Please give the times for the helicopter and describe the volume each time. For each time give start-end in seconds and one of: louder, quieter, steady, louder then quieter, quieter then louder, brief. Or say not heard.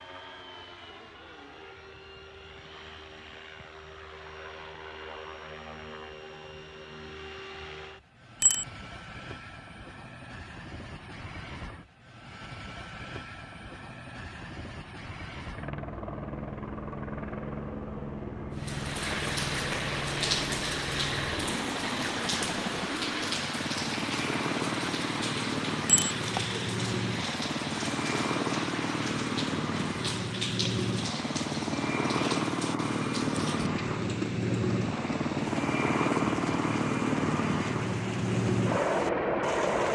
0.0-39.9 louder.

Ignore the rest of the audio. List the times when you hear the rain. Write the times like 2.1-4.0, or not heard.
18.6-39.9.